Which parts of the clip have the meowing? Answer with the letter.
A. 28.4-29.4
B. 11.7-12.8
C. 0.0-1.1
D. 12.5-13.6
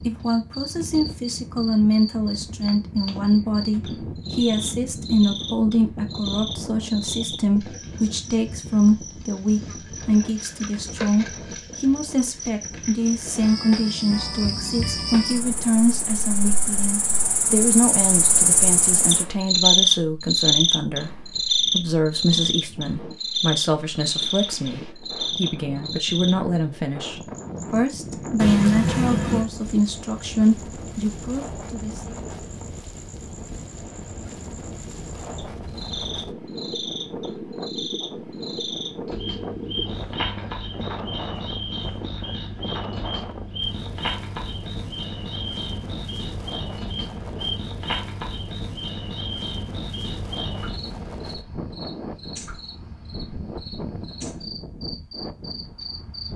A.